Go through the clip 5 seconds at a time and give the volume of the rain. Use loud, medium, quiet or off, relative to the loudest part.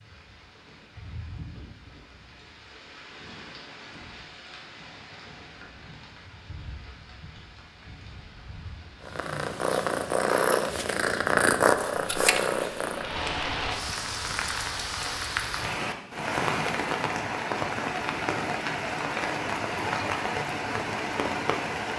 quiet, quiet, loud, loud, loud.